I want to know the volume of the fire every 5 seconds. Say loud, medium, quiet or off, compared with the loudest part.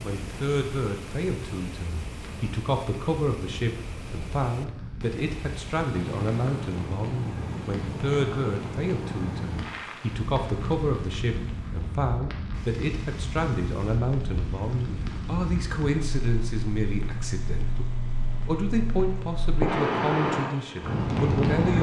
quiet, medium, medium, medium, loud.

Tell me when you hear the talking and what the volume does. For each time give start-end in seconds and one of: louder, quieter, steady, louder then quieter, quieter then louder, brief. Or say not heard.
0.0-21.7 steady.